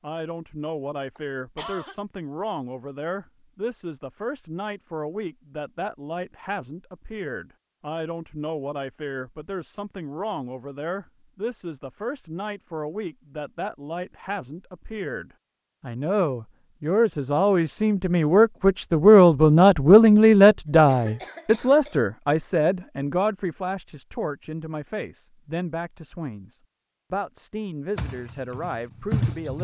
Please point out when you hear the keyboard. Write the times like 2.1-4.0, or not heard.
27.9-29.5.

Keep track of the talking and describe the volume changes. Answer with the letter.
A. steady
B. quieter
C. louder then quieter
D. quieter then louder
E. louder
C.